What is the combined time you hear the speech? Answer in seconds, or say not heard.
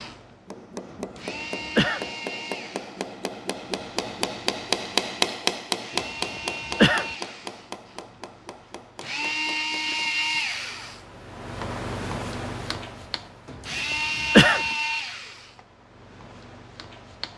not heard.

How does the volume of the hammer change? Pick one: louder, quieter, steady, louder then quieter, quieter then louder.
louder then quieter.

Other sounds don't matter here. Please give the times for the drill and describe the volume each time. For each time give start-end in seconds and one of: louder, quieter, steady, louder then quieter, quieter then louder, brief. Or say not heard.
0.0-17.3 louder.